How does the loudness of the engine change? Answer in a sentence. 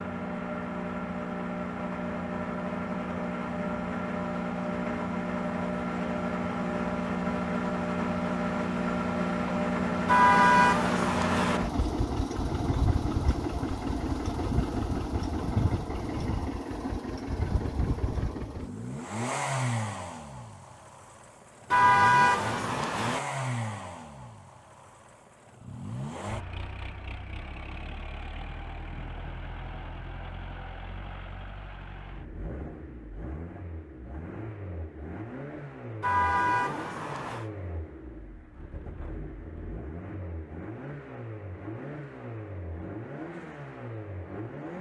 The volume of the engine goes down.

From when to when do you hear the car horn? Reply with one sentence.
You can hear the car horn from 10.1 to 11.6 s, from 21.7 to 23.2 s and from 36.0 to 37.5 s.